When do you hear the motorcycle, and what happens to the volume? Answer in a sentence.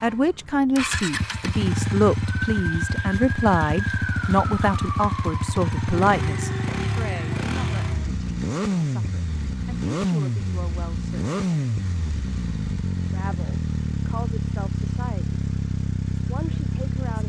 The motorcycle can be heard from 0.0 to 17.2 s, at a steady volume.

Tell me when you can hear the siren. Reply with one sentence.
The siren can be heard from 2.2 to 8.2 s.